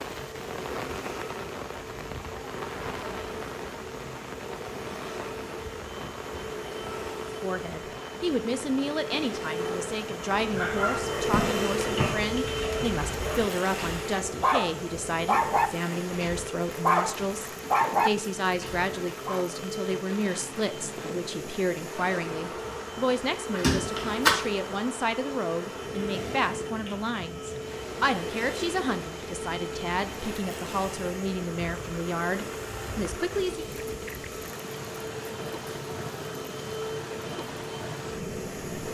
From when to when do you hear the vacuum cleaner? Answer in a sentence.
You can hear the vacuum cleaner from 0.0 to 38.9 s.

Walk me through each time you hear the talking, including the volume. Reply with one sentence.
You can hear the talking from 7.4 to 33.6 s, at a steady volume.